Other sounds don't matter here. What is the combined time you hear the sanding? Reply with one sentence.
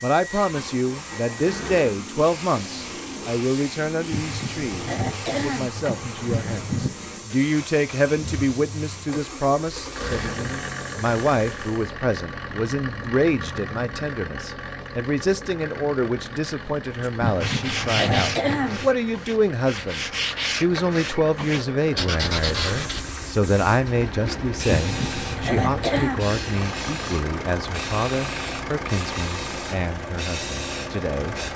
The sanding can be heard for 6 seconds in total.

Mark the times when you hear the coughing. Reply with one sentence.
The coughing can be heard from 4.1 to 6.9 s, from 17.2 to 18.9 s and from 24.6 to 26.2 s.